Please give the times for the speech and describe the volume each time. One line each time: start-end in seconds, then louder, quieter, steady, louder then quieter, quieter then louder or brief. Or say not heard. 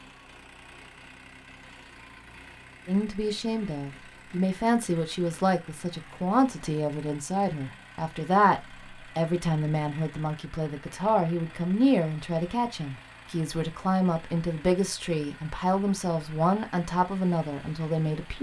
2.9-18.3 steady.